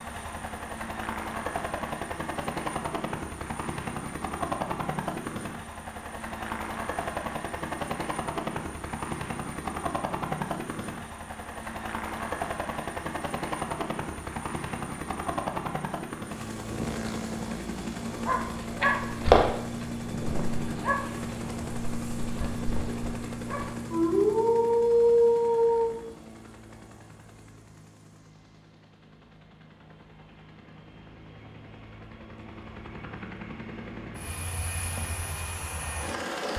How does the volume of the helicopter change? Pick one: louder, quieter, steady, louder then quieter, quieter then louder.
quieter.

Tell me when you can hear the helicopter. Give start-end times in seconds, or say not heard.
0.0-36.5.